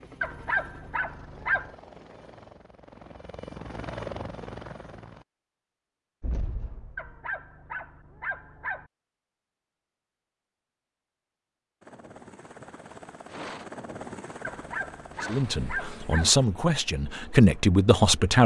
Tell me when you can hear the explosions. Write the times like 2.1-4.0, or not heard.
6.2-7.2.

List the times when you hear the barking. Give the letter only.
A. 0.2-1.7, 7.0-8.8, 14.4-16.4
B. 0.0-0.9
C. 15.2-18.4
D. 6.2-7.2
A.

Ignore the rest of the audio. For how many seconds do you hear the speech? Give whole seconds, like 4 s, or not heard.
3 s.